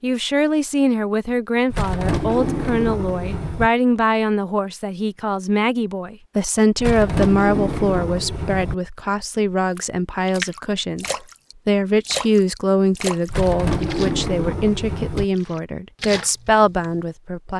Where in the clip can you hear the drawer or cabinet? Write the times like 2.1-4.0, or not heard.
1.7-3.7, 6.8-8.8, 13.2-15.2.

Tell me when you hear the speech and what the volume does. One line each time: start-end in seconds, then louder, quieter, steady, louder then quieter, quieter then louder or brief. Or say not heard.
0.0-17.5 steady.